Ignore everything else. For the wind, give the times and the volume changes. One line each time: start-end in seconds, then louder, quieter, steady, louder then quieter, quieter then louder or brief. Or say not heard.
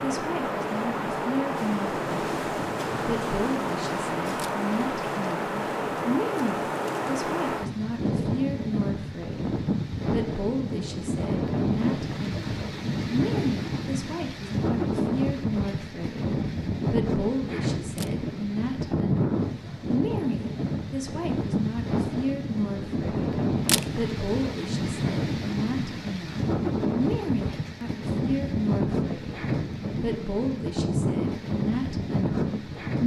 0.0-33.0 steady.